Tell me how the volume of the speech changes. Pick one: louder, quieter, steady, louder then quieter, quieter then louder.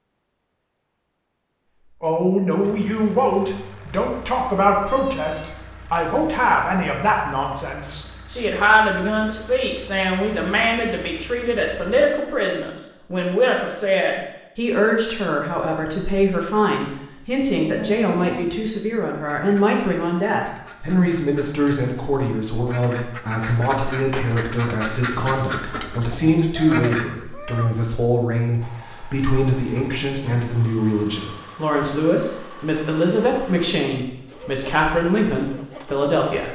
steady.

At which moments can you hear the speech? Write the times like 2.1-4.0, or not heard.
2.0-36.4.